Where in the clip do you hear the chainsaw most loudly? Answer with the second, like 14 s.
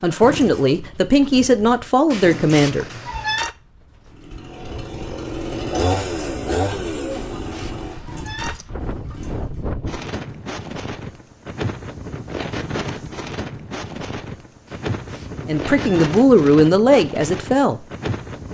6 s.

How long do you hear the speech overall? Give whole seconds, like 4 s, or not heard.
5 s.